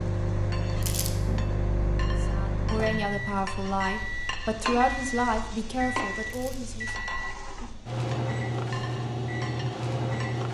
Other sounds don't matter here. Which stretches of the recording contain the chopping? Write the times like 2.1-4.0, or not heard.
not heard.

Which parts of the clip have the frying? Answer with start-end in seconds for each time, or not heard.
0.0-10.4.